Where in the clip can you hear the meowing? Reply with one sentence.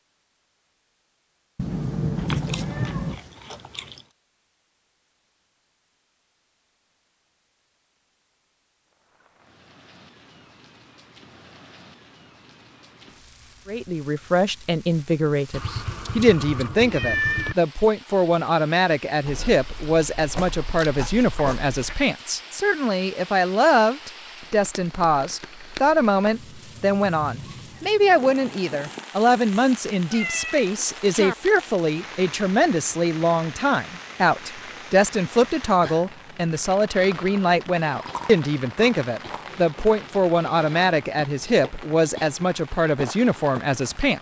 The meowing can be heard from 1.6 to 3.2 s, from 15.5 to 17.6 s and from 30.1 to 31.4 s.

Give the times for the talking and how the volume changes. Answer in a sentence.
The talking can be heard from 13.7 to 44.1 s, at a steady volume.